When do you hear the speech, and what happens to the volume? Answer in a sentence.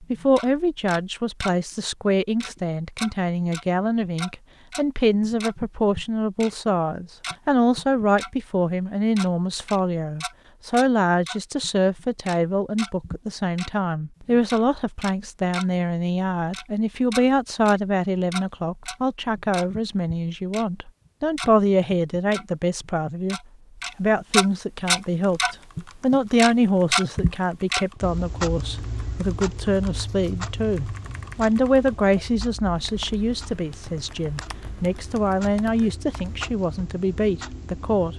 You can hear the speech from 0.0 to 38.1 s, at a steady volume.